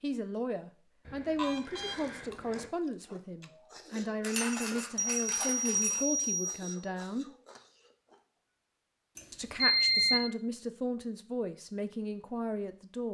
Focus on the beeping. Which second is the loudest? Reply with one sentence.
The loudest moment of the beeping is at 10 seconds.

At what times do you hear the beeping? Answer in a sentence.
You can hear the beeping from 1.1 to 2.6 s, from 5.0 to 6.7 s and from 9.2 to 10.2 s.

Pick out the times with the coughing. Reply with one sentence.
You can't hear the coughing here.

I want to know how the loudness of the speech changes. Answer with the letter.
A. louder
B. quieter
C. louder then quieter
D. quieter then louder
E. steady
E.